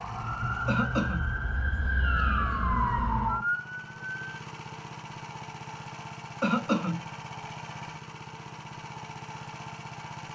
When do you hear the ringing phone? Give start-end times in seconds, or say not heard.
not heard.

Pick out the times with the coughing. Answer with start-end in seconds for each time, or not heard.
0.7-1.2, 6.4-7.0.